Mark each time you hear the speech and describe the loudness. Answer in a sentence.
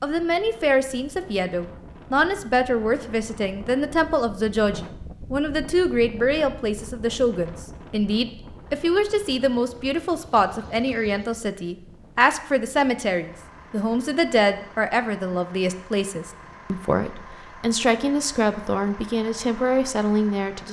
The speech can be heard from 0.0 to 20.6 s, at a steady volume.